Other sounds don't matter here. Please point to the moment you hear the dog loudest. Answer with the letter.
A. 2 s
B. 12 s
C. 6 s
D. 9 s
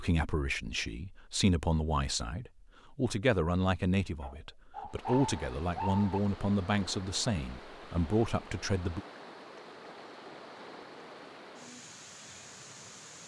C.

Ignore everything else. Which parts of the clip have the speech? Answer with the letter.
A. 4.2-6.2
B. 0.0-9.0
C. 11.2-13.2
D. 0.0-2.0
B.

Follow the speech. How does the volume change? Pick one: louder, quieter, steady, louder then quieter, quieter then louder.
steady.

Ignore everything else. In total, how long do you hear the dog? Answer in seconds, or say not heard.
2 s.